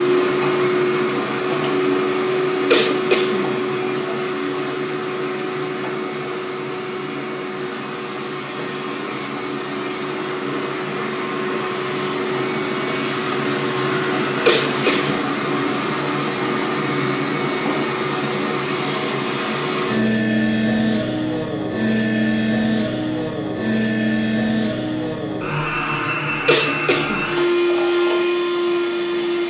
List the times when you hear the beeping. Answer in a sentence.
The beeping can't be heard in this clip.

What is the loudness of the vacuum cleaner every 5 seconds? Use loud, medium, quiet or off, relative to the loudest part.
loud, medium, loud, loud, loud, loud.